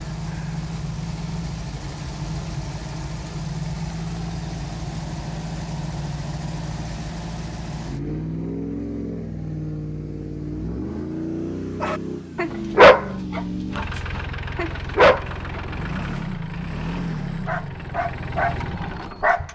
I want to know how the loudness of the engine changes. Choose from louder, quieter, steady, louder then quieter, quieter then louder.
steady.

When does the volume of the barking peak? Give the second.
13 s.